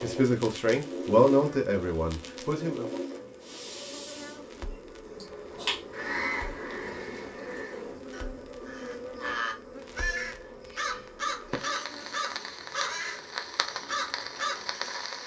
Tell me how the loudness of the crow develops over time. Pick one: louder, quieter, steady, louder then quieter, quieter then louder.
quieter then louder.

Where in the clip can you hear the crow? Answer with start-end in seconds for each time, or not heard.
5.2-14.6.